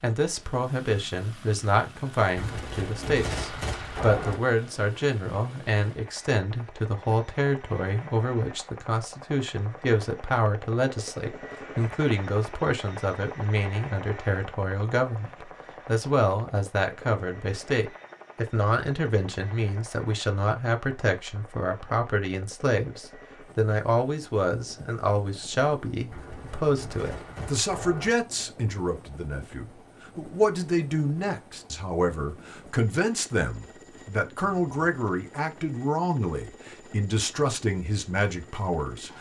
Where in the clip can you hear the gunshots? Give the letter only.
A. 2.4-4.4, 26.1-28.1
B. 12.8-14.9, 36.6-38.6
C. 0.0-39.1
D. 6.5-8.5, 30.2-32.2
A.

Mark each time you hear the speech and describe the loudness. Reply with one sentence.
The speech can be heard from 0.0 to 39.1 s, at a steady volume.